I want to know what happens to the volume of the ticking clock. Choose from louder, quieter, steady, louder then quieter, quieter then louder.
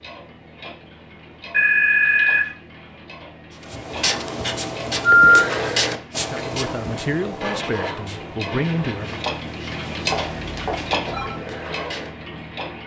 louder.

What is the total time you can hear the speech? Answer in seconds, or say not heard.
3 s.